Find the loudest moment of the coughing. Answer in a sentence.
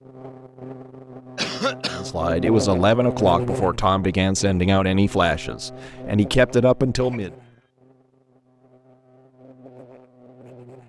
The volume of the coughing peaks at 2 seconds.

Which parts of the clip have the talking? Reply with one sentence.
The talking can be heard from 1.9 to 7.3 s.